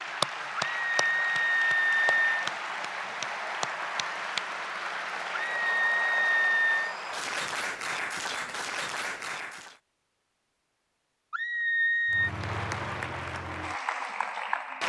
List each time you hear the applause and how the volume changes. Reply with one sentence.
The applause can be heard from 0.0 to 9.8 s, at a steady volume; and briefly from 12.1 to 14.8 s.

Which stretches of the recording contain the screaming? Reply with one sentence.
You can hear the screaming from 0.6 to 2.5 s, from 5.3 to 7.0 s and from 11.3 to 12.3 s.